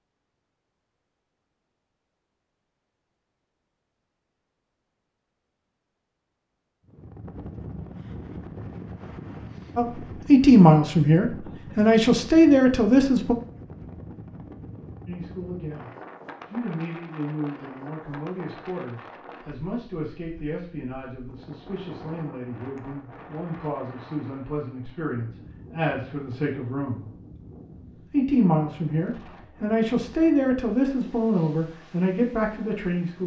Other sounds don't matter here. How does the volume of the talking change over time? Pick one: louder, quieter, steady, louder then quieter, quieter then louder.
quieter then louder.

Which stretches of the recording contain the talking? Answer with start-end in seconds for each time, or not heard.
9.8-13.3, 15.1-27.1, 28.0-33.2.